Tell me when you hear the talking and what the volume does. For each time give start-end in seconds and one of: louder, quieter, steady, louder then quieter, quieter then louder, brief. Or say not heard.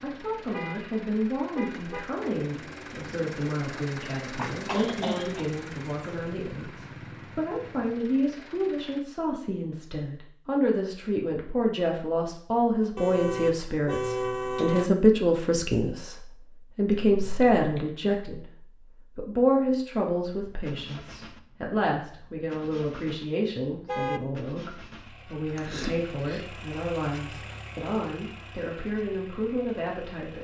0.0-30.4 louder then quieter.